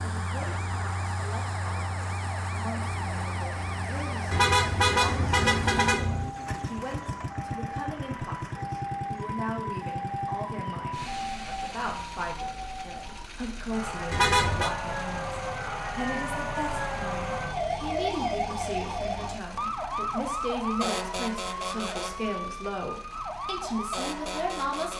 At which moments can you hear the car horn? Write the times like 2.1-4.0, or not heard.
4.3-6.3, 14.1-14.7.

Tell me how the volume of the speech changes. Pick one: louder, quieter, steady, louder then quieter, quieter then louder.
louder.